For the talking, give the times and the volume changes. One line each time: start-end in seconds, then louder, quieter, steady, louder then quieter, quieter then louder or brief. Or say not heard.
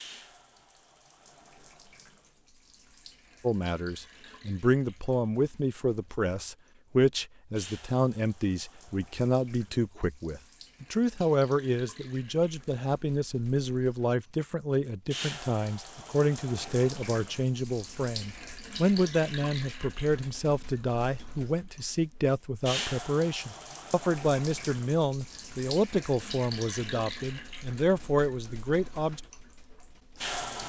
3.5-29.2 steady.